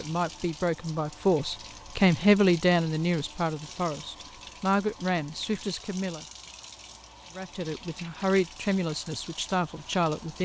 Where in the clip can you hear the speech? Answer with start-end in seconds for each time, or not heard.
0.0-6.2, 7.3-10.4.